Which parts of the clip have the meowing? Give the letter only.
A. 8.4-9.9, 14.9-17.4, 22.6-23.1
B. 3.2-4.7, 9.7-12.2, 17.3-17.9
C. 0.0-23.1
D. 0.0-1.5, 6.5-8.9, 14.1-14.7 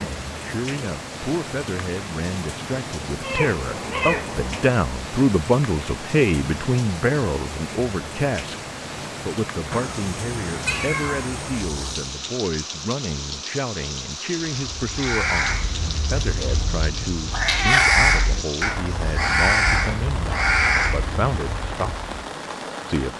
B.